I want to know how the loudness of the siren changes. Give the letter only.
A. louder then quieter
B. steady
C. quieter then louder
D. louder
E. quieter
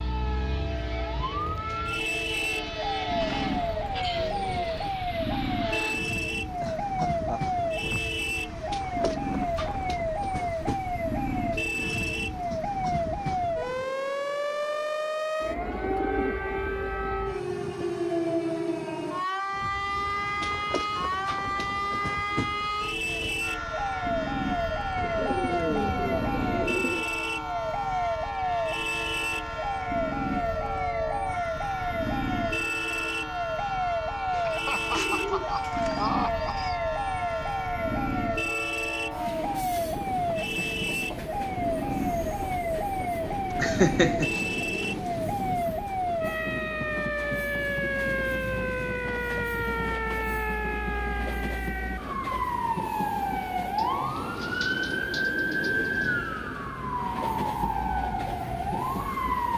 B.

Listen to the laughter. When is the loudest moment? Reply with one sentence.
The loudest moment of the laughter is at 44 seconds.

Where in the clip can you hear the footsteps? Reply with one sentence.
The footsteps can't be heard in this clip.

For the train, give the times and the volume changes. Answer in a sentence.
You can hear the train from 0.0 to 13.8 s, at a steady volume; and from 19.4 to 59.5 s, at a steady volume.